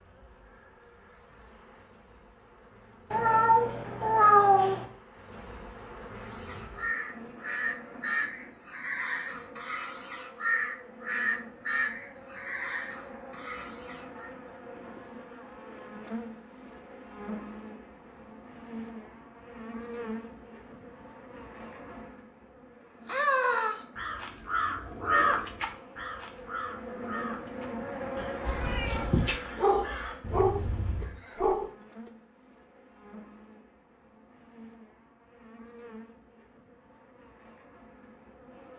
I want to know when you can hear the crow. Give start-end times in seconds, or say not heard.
6.2-14.3, 23.1-31.2.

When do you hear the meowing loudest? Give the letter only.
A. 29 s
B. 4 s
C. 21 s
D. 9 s
B.